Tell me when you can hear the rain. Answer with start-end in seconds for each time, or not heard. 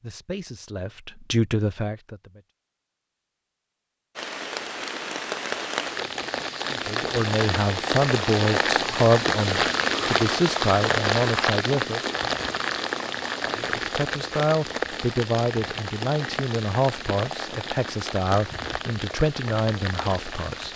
4.2-20.7.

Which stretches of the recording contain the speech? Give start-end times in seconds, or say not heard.
0.0-2.5, 6.7-12.0, 13.5-20.7.